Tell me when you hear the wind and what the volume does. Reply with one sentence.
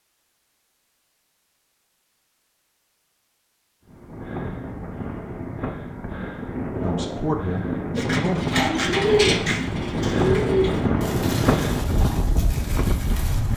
You can hear the wind from 3.9 to 13.5 s, getting louder.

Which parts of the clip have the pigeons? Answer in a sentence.
The pigeons can be heard from 8.0 to 13.5 s.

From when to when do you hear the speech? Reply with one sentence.
You can hear the speech from 6.8 to 8.4 s.